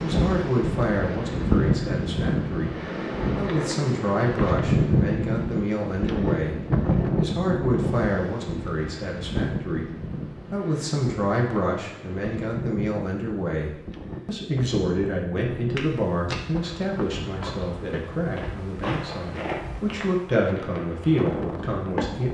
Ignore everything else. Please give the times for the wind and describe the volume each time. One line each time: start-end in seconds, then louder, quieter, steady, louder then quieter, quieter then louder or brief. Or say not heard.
0.0-22.2 quieter.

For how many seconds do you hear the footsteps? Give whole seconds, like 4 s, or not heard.
7 s.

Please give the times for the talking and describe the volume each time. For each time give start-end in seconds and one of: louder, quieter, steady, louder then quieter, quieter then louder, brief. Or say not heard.
0.0-22.2 steady.